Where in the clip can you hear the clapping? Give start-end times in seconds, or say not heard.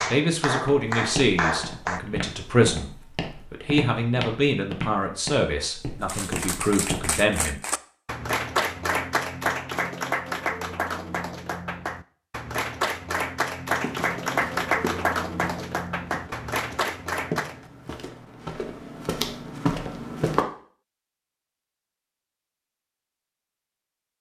0.0-2.0, 6.0-17.6.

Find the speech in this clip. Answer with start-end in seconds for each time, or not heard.
0.1-7.6.